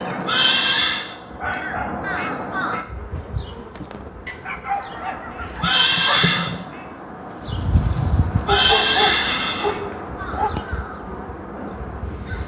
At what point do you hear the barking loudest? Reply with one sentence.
The volume of the barking peaks at 9 seconds.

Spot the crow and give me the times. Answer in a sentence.
The crow can be heard from 0.0 to 2.9 s and from 4.8 to 12.4 s.